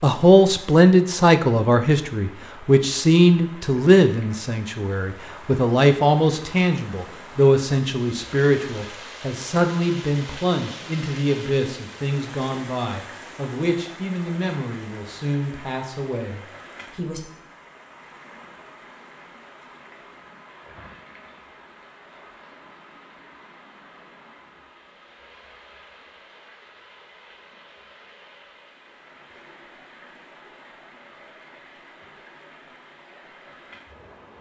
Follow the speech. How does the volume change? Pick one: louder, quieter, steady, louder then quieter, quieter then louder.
quieter.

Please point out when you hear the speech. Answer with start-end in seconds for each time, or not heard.
0.0-17.2.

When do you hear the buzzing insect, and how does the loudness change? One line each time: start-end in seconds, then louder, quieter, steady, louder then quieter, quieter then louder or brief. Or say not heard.
not heard.